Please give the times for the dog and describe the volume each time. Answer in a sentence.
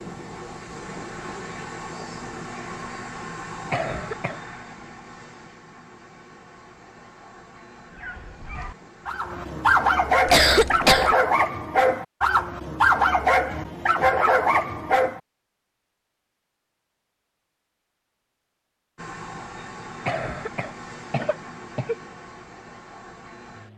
The dog can be heard from 7.9 to 15.2 s, getting louder.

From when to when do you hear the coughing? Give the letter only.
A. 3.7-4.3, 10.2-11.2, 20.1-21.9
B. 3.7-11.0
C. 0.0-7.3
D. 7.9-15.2
A.